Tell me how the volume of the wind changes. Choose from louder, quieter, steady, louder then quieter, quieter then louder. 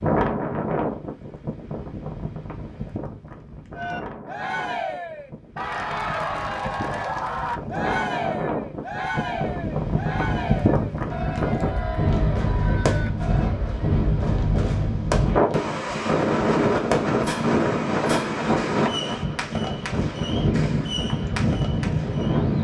louder.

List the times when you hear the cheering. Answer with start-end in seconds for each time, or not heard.
3.8-13.6.